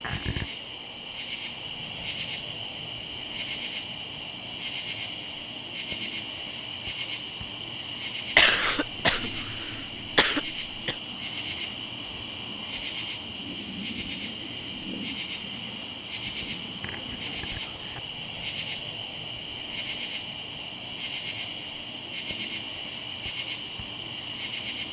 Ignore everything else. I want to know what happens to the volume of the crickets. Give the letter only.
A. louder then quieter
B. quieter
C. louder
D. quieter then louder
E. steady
E.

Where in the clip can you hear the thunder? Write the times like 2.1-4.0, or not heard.
not heard.